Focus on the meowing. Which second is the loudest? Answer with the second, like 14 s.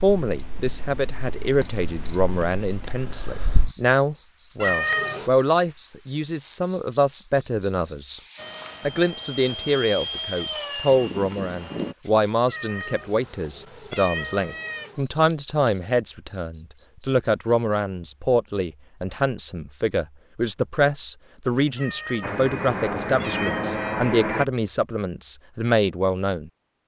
5 s.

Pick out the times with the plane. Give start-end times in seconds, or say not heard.
8.3-11.9, 22.2-24.4.